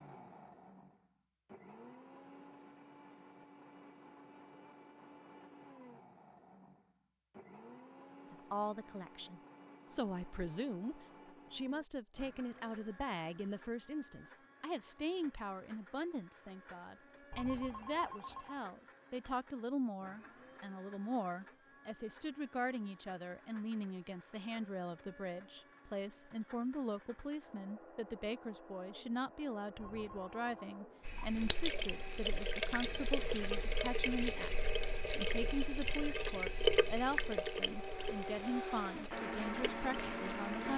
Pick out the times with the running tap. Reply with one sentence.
The running tap can be heard from 31.1 to 40.7 s.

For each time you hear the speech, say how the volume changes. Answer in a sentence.
The speech can be heard from 8.3 to 40.7 s, at a steady volume.